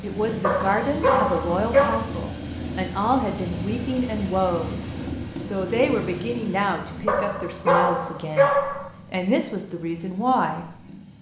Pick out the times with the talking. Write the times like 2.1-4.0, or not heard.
0.0-4.8, 5.5-11.1.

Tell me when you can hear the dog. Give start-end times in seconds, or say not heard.
0.4-2.0, 7.0-8.9.